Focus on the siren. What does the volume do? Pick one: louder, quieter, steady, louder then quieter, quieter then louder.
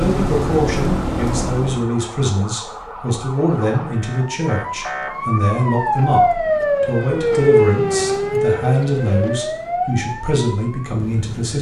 louder then quieter.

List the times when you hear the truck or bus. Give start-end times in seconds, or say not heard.
0.0-1.9.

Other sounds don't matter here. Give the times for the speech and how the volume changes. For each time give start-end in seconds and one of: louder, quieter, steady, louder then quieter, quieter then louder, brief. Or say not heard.
0.0-11.5 steady.